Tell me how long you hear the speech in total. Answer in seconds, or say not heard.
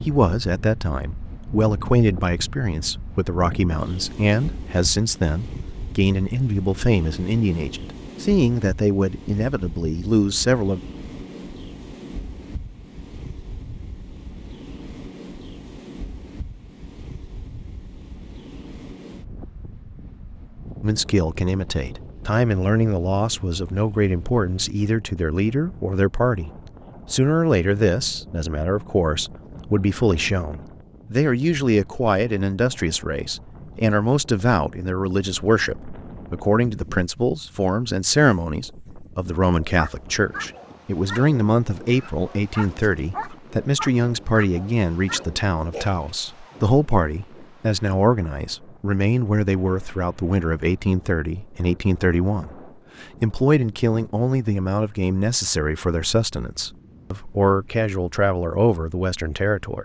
49 s.